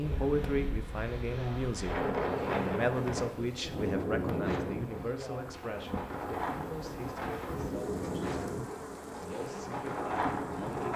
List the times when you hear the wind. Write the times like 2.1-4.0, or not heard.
0.0-10.9.